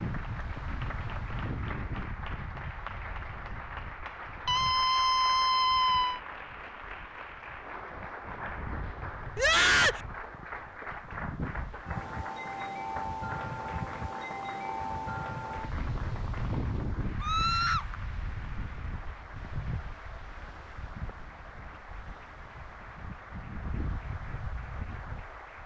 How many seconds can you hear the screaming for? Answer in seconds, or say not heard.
3 s.